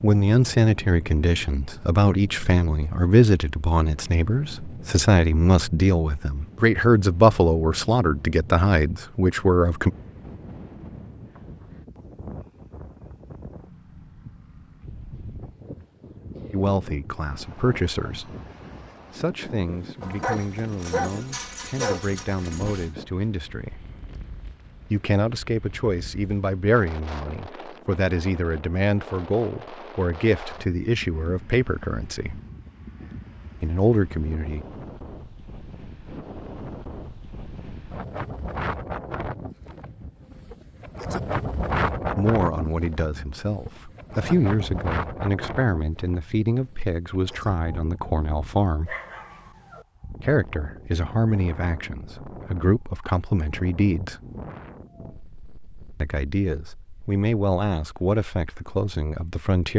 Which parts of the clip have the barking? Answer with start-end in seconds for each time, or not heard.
20.0-22.9, 48.9-49.9.